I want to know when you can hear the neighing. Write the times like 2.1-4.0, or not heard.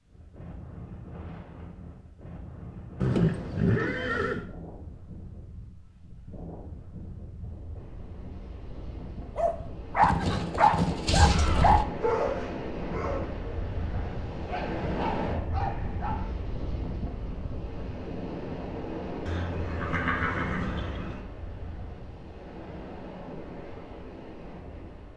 3.0-4.5, 10.0-11.8, 19.2-21.2.